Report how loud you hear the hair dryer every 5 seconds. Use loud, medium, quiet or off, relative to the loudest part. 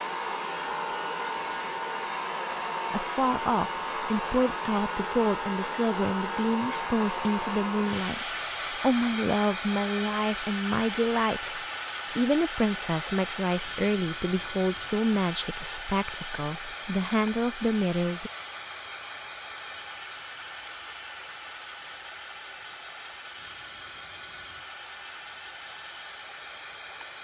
loud, loud, loud, medium, medium, medium.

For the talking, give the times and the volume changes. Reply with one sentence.
You can hear the talking from 2.9 to 18.3 s, at a steady volume.